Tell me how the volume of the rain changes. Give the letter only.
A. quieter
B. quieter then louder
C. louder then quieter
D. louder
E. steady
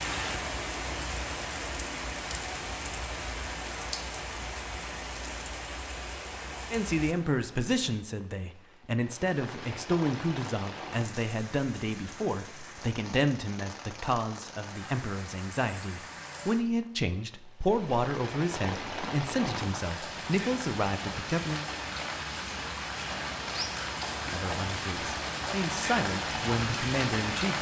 B.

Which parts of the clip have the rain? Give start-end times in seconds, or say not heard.
0.0-27.5.